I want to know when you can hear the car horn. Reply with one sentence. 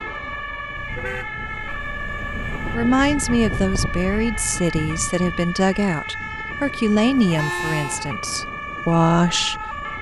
You can hear the car horn from 0.8 to 2.8 s and from 7.0 to 8.0 s.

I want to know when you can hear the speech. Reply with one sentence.
The speech can be heard from 2.7 to 9.7 s.